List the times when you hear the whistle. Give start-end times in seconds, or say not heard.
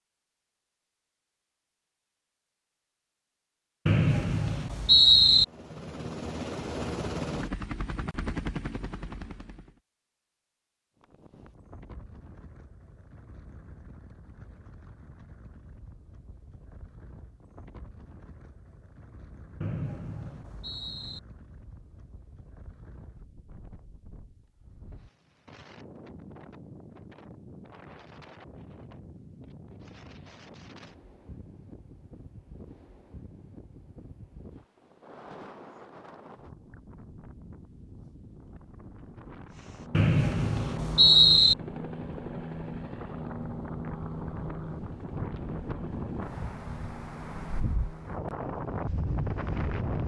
3.9-5.5, 19.6-21.2, 39.9-41.5.